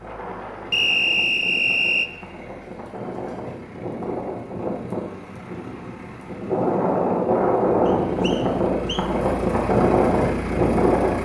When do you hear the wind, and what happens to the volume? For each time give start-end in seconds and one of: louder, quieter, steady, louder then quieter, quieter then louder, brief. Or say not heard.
0.0-11.1 louder.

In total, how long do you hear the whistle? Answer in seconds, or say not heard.
3 s.